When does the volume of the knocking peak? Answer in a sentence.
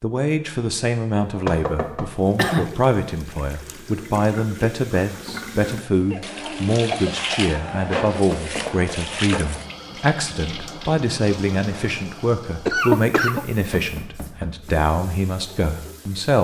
The volume of the knocking peaks at 2 seconds.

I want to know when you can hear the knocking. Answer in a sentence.
You can hear the knocking from 1.4 to 2.0 s, from 8.3 to 8.9 s and from 13.7 to 14.8 s.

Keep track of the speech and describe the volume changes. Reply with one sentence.
The loudness of the speech stays about the same.